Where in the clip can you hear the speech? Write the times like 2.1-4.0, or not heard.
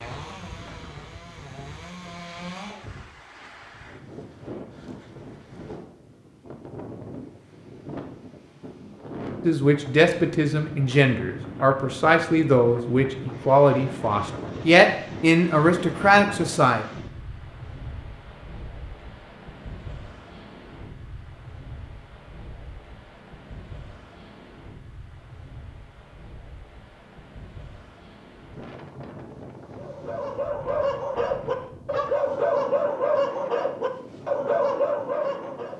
9.4-16.9.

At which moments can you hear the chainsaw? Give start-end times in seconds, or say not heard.
0.0-2.9.